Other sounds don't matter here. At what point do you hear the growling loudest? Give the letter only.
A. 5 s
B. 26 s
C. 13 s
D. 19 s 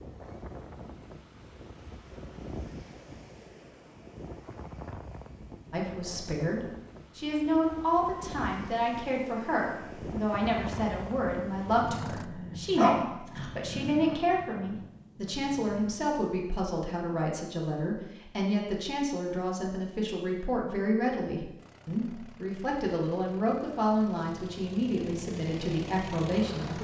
C.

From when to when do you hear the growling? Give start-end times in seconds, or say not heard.
12.1-14.2.